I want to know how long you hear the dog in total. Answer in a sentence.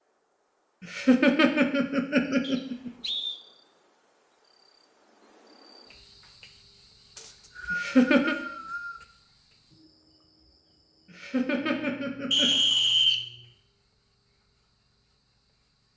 The dog can't be heard in this clip.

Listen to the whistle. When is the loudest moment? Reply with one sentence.
The loudest moment of the whistle is at 13 seconds.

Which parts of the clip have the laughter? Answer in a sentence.
The laughter can be heard from 0.8 to 2.9 s, from 7.7 to 8.3 s and from 11.1 to 12.5 s.